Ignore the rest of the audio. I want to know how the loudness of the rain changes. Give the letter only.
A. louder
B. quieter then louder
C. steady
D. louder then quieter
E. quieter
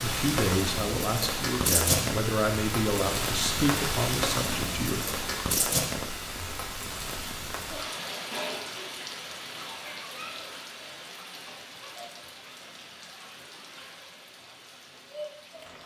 E.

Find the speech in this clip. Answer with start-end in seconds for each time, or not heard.
0.0-5.0.